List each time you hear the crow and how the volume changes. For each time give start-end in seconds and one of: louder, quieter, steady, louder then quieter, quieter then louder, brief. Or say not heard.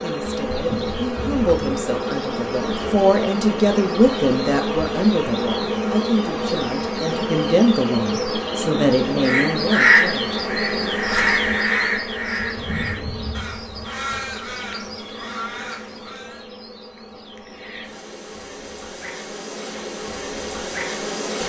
9.2-16.4 quieter.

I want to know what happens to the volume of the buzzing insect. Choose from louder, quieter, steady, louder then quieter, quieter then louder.
quieter.